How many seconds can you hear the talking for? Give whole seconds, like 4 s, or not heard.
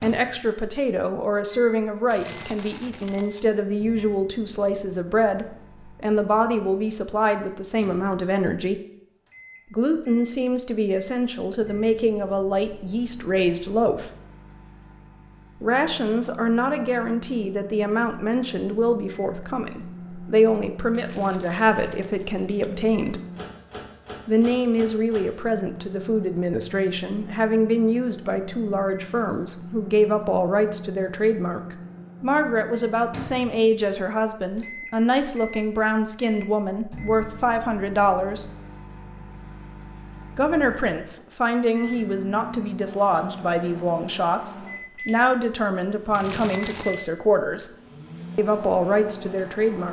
44 s.